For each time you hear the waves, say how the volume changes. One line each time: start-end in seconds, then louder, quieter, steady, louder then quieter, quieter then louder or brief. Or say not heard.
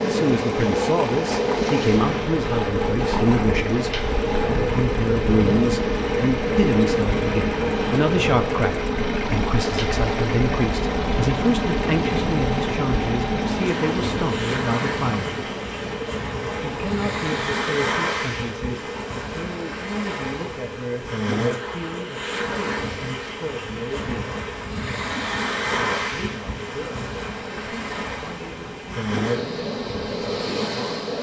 0.0-31.1 steady.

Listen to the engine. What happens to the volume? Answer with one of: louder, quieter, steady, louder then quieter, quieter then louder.
quieter.